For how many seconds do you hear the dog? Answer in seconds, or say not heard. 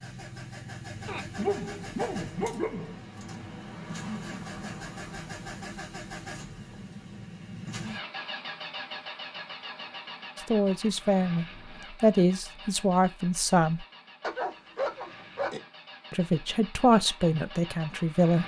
3 s.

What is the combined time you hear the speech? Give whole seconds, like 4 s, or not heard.
6 s.